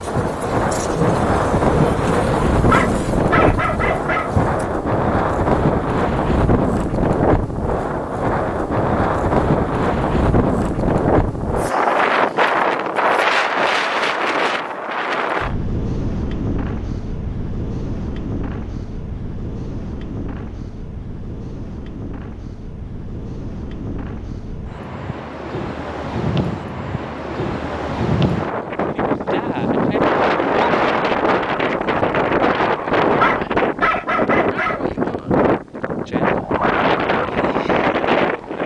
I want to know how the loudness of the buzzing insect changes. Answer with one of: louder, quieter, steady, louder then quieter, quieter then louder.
quieter.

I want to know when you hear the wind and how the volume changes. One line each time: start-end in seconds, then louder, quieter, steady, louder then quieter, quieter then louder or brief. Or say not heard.
0.0-38.6 quieter then louder.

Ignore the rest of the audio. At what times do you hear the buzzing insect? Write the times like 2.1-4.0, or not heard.
0.0-4.7.